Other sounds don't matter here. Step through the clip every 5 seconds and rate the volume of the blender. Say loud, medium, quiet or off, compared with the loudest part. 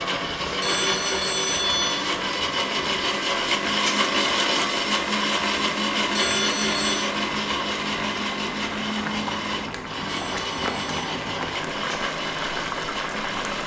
loud, loud, medium.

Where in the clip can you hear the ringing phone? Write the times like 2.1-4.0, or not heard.
0.6-2.0, 6.2-7.0, 10.1-11.0.